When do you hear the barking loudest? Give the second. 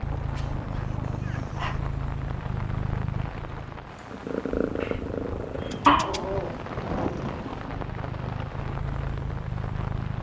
6 s.